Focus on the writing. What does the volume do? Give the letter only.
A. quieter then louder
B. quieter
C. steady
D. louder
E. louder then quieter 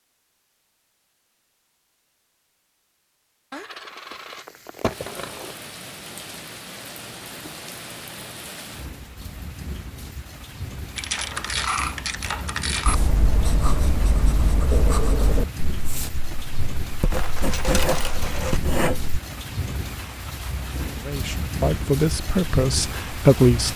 A.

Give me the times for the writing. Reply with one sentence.
The writing can be heard from 12.8 to 19.1 s.